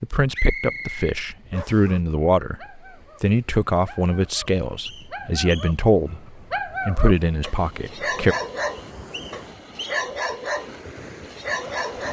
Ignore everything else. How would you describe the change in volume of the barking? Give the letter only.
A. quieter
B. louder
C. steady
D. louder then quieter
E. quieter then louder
B.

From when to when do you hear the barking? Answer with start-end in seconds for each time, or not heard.
1.5-12.0.